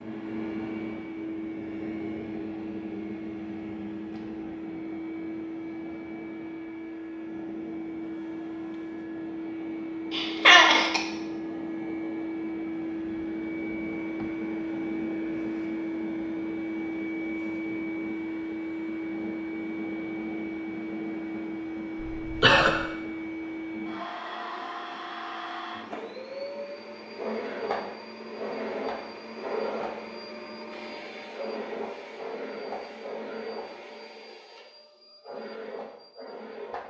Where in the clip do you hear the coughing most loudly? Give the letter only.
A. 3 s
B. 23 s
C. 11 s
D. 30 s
C.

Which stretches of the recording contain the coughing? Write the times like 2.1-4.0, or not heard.
10.1-11.0, 22.0-22.8.